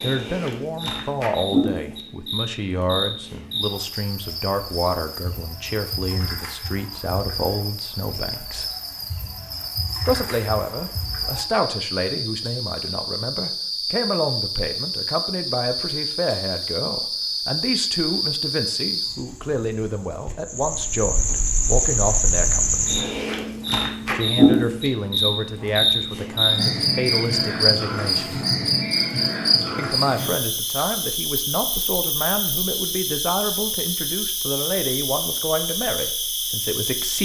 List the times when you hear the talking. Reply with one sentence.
You can hear the talking from 0.0 to 8.7 s, from 10.1 to 22.9 s, from 24.1 to 28.4 s and from 29.8 to 37.2 s.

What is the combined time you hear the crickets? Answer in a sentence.
The crickets can be heard for 37 seconds in total.